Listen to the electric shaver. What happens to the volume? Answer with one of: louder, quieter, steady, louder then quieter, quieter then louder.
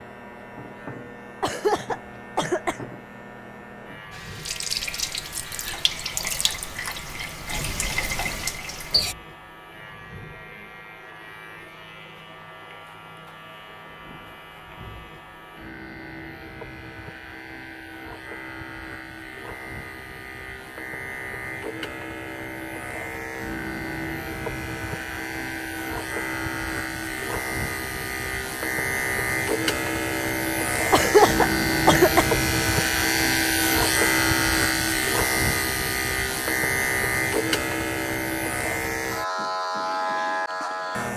louder.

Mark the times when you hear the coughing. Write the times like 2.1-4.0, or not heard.
1.4-2.9, 30.9-32.4.